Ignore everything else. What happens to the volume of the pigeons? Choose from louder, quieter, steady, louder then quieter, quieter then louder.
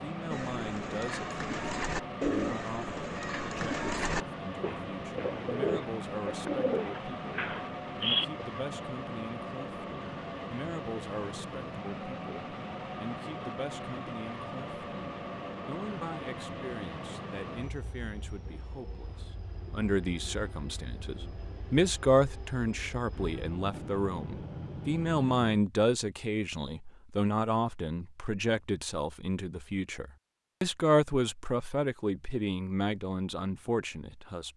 steady.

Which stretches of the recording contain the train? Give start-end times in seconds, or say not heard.
0.0-25.5.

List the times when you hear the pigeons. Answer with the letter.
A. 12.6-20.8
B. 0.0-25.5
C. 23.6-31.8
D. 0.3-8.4
D.